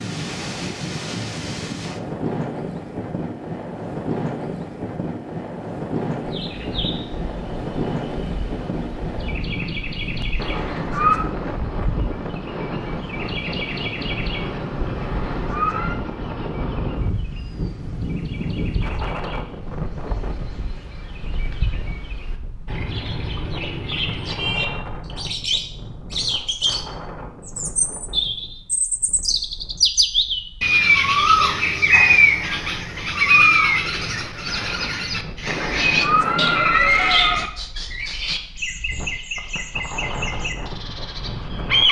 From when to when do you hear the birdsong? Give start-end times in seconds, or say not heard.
6.2-41.8.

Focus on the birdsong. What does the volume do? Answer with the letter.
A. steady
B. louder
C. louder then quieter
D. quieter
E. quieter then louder
C.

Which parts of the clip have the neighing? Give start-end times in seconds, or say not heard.
10.3-11.2, 14.9-15.9, 35.5-37.5.